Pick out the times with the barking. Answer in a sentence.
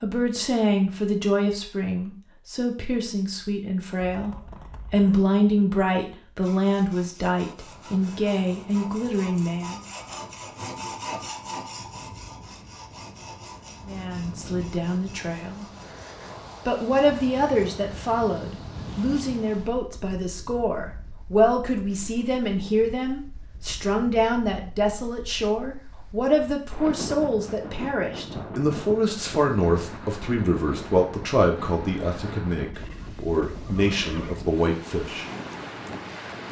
You can't hear the barking here.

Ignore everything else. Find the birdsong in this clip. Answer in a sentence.
The birdsong can't be heard in this clip.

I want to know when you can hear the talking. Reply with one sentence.
You can hear the talking from 0.0 to 9.8 s, from 13.8 to 15.7 s and from 16.6 to 35.2 s.